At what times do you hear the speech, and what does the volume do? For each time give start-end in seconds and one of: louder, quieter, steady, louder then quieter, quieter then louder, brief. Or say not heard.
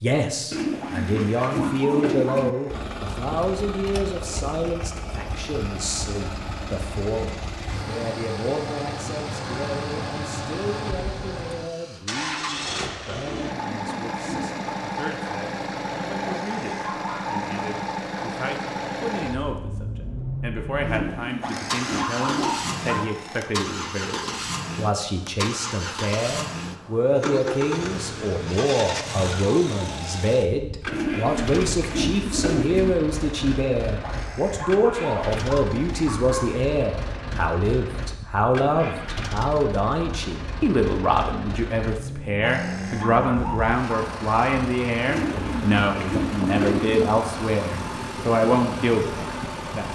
0.0-49.8 quieter then louder.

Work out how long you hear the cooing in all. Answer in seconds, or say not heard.
9 s.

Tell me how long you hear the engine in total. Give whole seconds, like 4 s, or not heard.
47 s.